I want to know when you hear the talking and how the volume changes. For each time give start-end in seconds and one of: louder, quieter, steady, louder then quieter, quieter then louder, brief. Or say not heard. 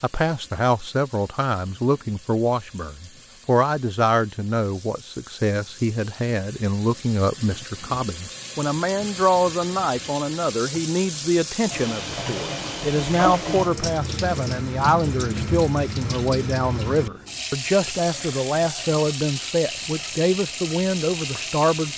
0.0-21.9 steady.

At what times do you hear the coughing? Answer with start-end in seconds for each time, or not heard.
not heard.